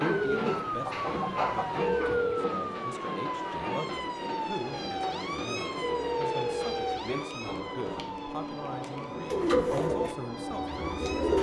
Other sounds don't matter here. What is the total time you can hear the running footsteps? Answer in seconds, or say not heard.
not heard.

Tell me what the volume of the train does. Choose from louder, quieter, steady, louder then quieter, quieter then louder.
steady.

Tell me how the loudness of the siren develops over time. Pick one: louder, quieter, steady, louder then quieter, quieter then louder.
quieter.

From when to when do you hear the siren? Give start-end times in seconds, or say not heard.
0.0-11.3.